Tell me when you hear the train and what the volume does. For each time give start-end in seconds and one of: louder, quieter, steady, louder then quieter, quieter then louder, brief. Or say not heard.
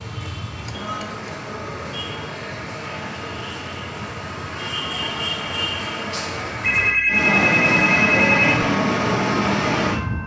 0.0-10.2 louder.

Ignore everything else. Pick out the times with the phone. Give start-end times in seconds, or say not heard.
0.6-1.3, 6.6-8.7.